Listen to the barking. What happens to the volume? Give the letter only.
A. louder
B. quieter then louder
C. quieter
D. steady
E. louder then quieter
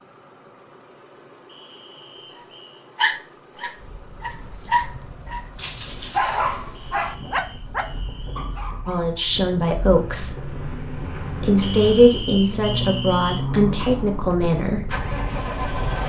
E.